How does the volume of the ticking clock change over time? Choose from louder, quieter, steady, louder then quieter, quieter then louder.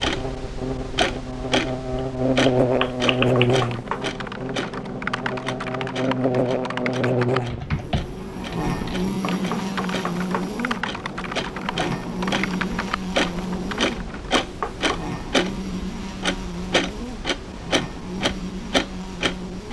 quieter then louder.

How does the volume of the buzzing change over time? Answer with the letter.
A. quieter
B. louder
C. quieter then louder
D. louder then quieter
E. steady
A.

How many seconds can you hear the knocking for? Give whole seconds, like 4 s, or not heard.
3 s.